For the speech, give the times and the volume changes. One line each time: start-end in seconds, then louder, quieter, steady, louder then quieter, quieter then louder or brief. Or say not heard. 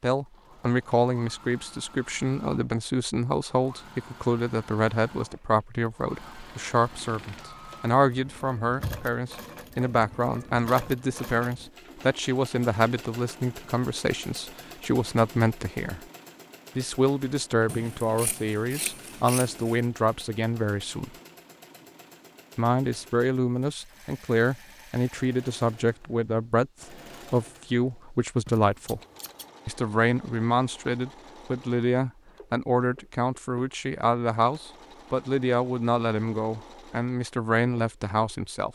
0.0-16.0 steady
16.8-21.1 steady
22.6-29.0 steady
29.6-38.6 steady.